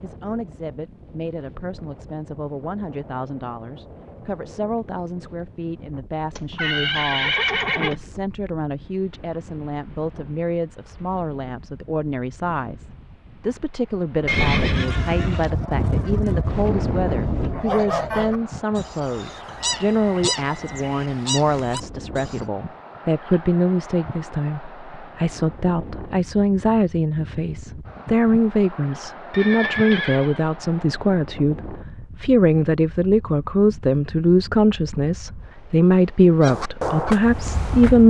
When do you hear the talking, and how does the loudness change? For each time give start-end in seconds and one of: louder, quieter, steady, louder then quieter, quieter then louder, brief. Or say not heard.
0.0-38.0 louder.